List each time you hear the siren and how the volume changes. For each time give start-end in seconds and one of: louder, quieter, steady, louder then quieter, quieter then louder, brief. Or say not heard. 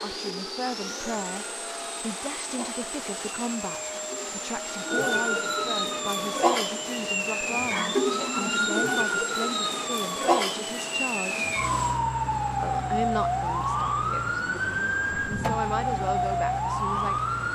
0.1-17.5 louder.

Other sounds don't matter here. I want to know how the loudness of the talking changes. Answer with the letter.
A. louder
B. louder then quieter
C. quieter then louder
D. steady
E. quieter
D.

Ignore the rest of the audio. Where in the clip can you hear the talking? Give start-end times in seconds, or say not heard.
0.0-11.5, 12.6-17.3.